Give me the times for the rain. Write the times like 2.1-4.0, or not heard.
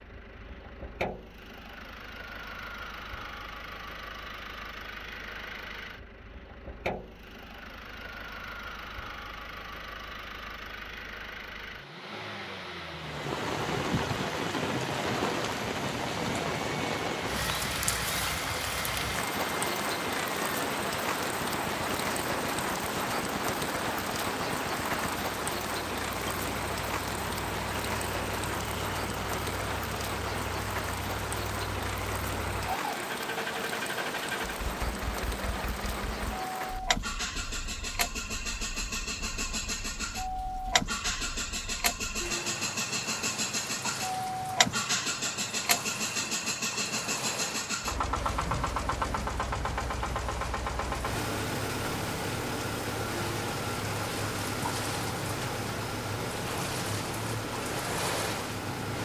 12.9-58.9.